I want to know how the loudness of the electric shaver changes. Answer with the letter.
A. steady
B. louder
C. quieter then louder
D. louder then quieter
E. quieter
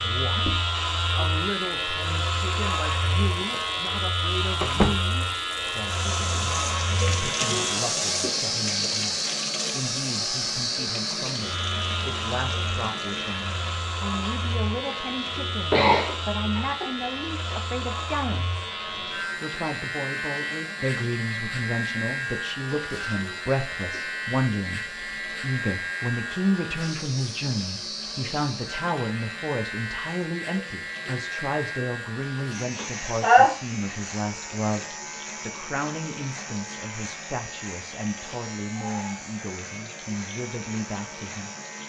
E.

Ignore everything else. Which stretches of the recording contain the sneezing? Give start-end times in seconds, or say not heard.
15.7-16.9, 32.8-33.5.